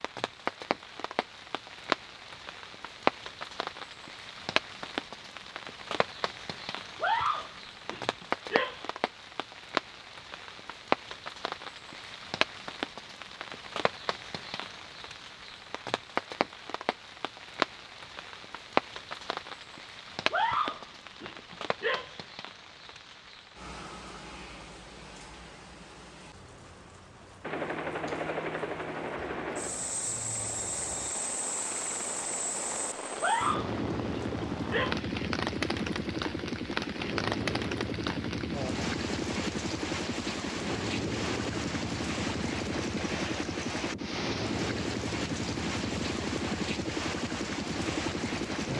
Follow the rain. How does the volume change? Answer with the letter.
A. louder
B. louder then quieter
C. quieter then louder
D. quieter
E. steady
C.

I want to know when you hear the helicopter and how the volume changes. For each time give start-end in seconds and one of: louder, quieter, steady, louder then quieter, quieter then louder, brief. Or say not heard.
27.4-48.7 steady.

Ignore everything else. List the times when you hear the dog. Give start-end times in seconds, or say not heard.
7.0-8.9, 20.3-22.2, 33.2-35.1.